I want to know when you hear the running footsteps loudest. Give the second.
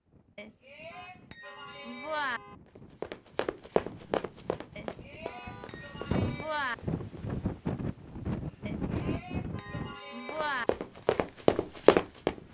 12 s.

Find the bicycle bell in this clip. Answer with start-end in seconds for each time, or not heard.
0.3-2.4, 4.8-6.8, 8.7-10.7.